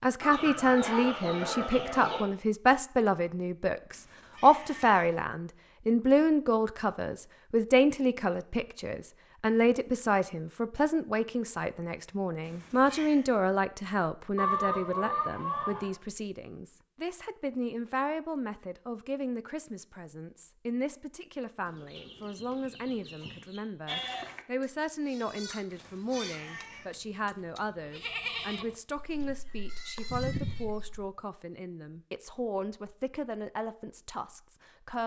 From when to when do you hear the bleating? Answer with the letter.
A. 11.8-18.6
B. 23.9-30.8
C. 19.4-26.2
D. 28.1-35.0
B.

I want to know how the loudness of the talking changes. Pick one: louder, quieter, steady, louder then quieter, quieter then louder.
quieter.